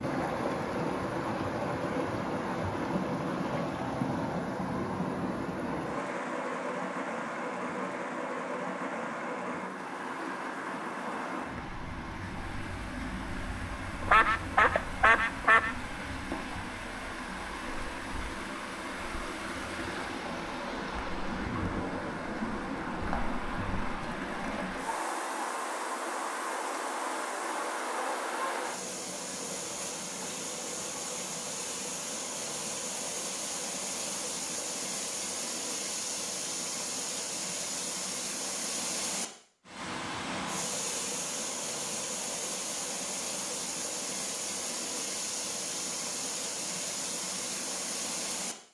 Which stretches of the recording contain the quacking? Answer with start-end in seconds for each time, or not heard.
14.1-15.8.